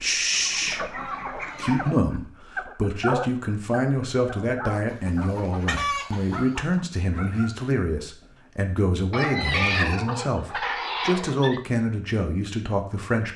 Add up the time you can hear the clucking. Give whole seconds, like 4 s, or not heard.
6 s.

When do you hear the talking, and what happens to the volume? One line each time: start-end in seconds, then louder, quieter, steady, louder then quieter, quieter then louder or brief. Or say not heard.
0.0-13.3 steady.